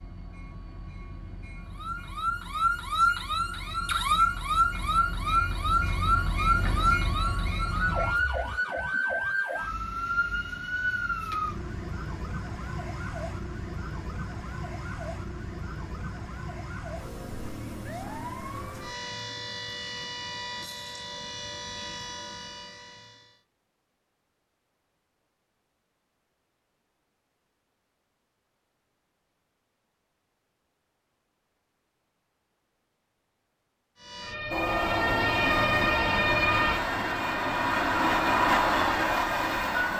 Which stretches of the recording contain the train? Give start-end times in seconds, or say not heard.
0.0-8.2, 34.5-39.9.